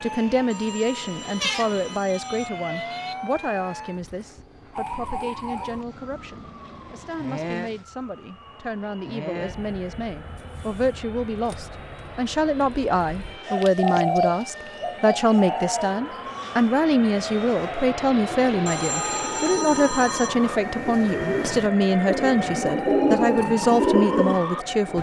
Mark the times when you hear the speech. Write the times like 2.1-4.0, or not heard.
0.0-24.9.